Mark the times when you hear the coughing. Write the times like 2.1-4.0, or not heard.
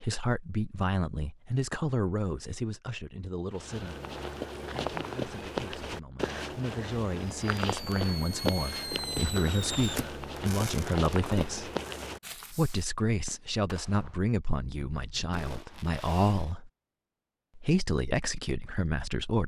not heard.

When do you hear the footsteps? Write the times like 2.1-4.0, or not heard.
3.5-12.6.